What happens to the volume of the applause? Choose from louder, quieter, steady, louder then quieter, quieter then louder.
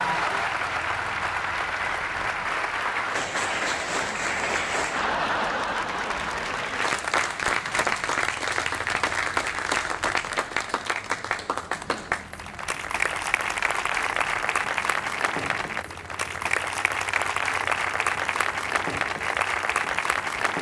steady.